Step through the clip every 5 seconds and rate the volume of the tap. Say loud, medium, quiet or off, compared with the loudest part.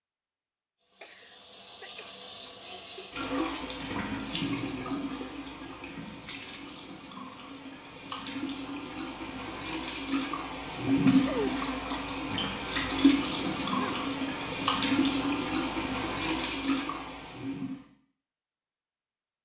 medium, medium, loud, loud.